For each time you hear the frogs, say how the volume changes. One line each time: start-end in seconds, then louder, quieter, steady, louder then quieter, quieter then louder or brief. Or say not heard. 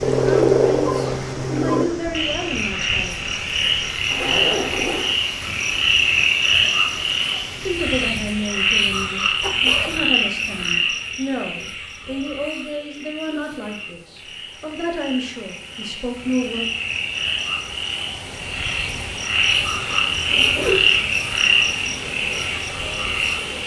0.0-23.6 quieter then louder.